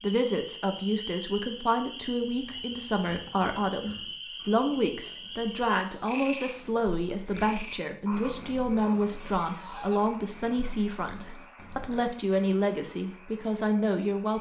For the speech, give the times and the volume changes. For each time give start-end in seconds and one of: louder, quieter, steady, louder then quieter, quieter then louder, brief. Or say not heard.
0.0-14.3 steady.